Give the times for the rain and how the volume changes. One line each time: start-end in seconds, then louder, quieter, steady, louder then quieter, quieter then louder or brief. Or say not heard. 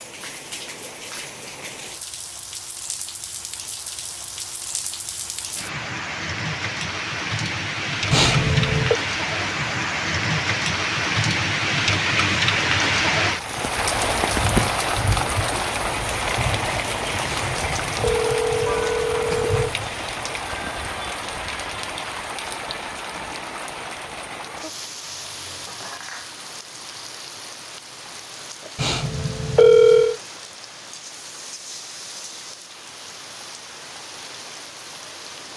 0.0-35.5 louder then quieter.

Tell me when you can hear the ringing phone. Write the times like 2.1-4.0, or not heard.
8.1-9.0, 17.2-19.7, 28.8-30.1.